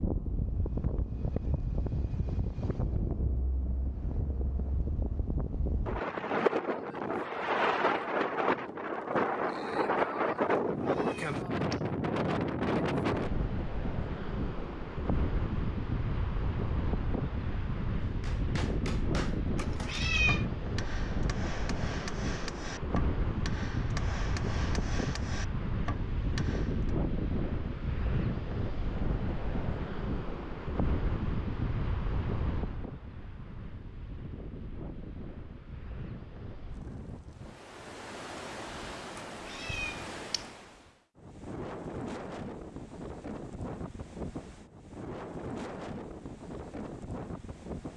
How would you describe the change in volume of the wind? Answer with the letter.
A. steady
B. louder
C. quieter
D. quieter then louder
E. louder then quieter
C.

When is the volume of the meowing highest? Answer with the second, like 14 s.
20 s.